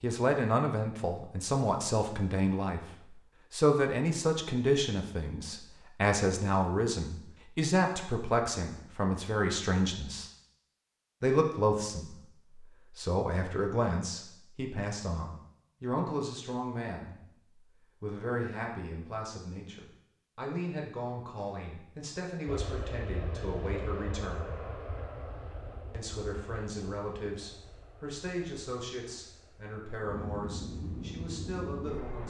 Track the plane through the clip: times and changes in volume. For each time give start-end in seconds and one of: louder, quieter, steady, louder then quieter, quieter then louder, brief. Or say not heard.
22.4-32.2 quieter then louder.